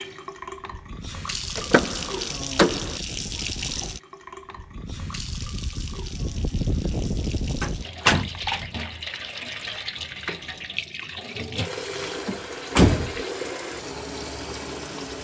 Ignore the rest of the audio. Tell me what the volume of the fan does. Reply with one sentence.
The loudness of the fan goes up.